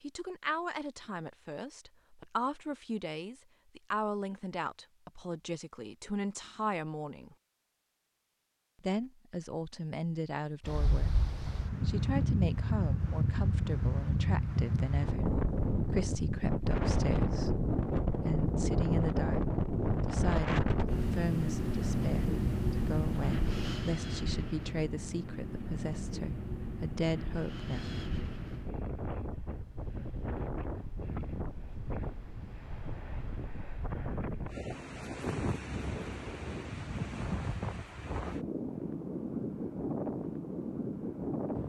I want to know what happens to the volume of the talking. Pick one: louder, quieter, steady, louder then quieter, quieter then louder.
steady.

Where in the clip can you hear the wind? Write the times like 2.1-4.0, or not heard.
10.6-41.6.